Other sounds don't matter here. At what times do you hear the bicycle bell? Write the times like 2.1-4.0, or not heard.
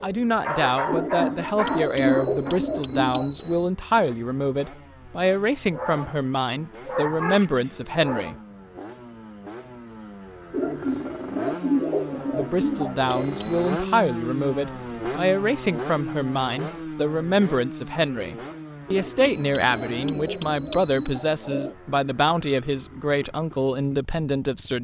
1.6-3.6, 13.1-14.1, 19.2-21.2.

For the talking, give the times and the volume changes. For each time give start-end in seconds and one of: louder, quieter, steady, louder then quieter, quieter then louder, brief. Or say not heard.
0.0-8.3 steady
12.2-24.7 steady.